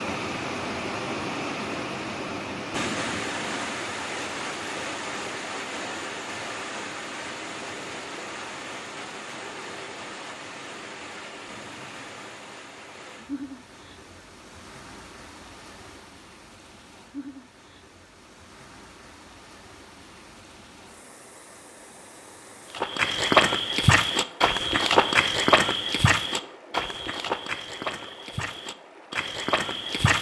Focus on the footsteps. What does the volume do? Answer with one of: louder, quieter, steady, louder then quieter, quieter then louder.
quieter.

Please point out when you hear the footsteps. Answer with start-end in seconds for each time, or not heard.
22.7-30.1.